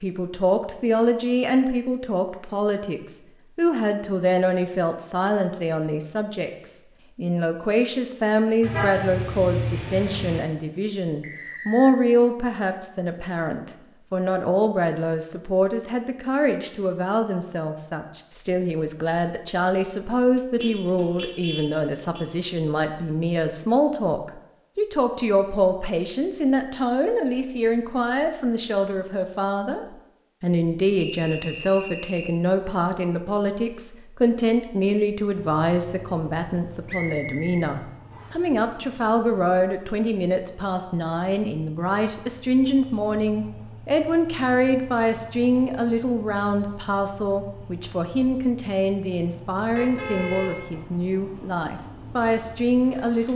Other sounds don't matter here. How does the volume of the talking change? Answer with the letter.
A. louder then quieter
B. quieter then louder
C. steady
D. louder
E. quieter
C.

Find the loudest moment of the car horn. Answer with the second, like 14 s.
9 s.